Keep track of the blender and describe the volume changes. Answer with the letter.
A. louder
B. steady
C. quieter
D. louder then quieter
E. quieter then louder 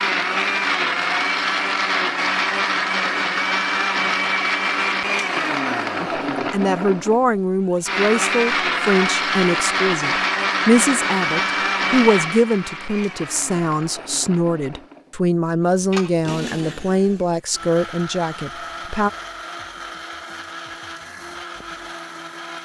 C.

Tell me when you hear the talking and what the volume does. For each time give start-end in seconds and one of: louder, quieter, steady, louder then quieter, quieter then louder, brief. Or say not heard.
6.0-19.1 steady.